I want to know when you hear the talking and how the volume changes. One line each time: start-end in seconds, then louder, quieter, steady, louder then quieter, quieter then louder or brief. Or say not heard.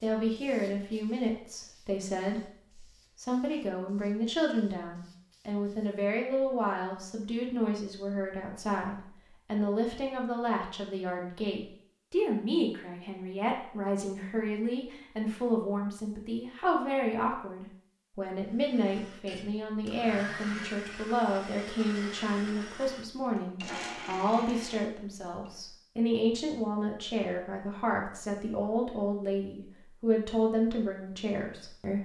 0.0-32.0 steady.